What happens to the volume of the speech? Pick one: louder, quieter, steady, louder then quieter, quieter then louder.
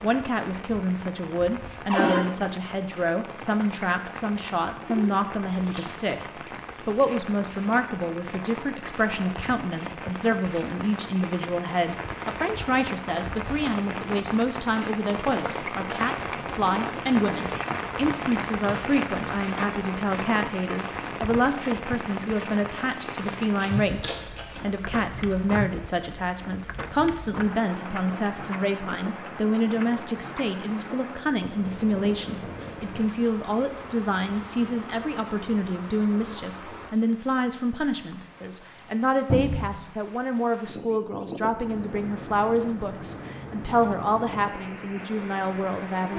steady.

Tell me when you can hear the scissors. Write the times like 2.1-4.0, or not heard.
4.8-6.2, 23.2-24.6.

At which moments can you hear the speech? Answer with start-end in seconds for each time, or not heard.
0.0-46.1.